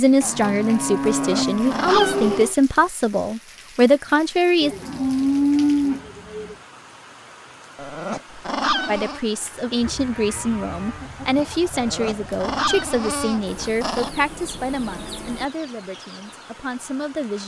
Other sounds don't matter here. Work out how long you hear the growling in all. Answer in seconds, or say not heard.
5 s.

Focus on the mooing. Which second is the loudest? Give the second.
6 s.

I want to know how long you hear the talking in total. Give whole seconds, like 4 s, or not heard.
13 s.